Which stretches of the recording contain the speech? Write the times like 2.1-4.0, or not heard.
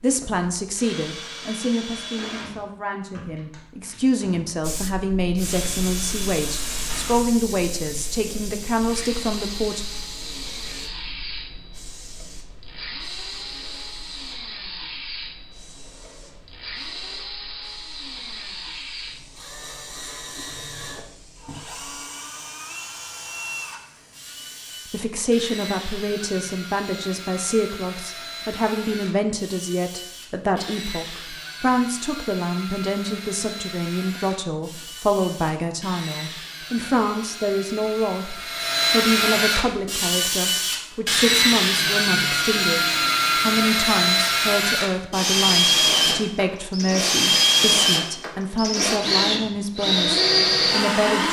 0.0-9.8, 24.9-51.2.